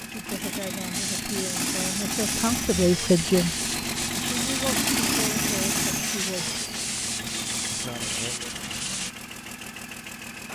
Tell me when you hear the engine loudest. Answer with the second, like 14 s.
5 s.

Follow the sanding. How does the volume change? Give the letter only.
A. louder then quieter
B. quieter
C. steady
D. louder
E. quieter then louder
C.